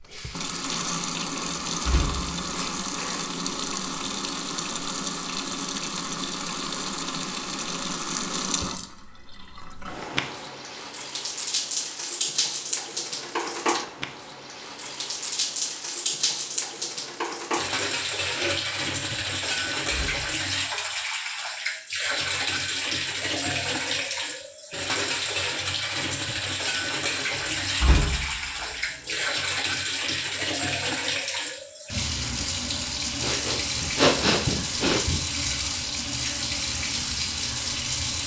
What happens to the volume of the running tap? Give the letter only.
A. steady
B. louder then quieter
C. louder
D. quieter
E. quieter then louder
A.